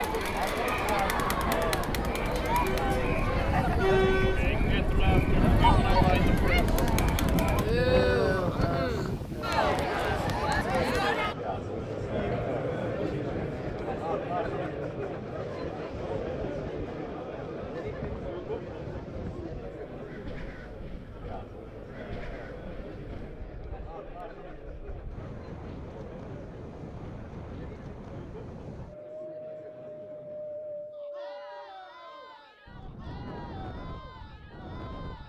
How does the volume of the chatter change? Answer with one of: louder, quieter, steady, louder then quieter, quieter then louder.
quieter.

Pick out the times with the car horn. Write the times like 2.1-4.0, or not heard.
not heard.